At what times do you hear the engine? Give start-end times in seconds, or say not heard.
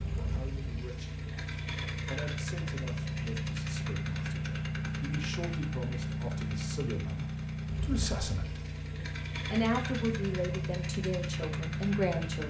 0.0-12.4.